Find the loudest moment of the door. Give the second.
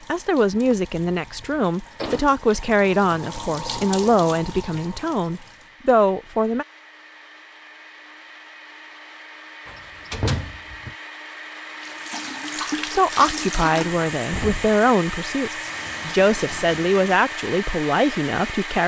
10 s.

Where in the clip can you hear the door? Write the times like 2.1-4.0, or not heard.
0.7-2.2, 9.7-10.9, 14.0-14.8.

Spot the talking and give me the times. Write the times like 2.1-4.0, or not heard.
0.1-6.7, 12.9-18.8.